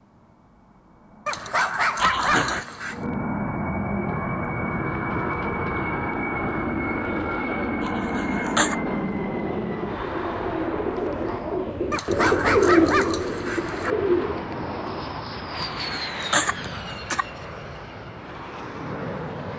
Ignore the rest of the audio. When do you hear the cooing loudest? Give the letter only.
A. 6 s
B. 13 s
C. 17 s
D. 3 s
B.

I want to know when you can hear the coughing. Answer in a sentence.
You can hear the coughing from 1.9 to 2.6 s, from 7.8 to 8.8 s and from 15.6 to 17.2 s.